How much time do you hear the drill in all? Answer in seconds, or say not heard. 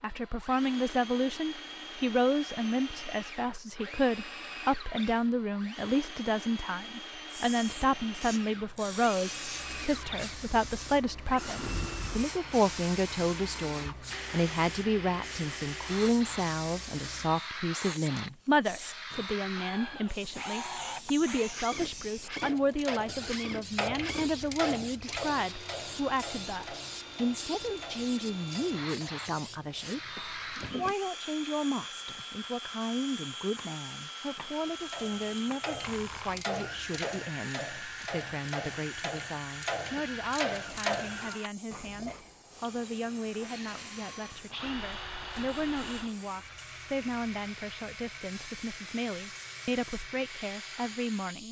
51 s.